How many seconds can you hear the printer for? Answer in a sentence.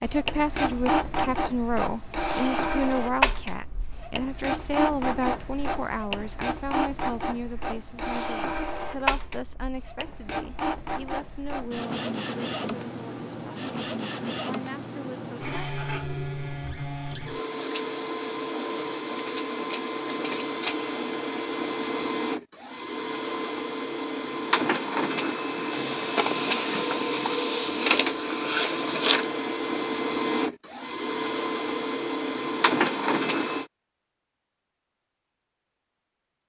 The printer can be heard for 34 seconds in total.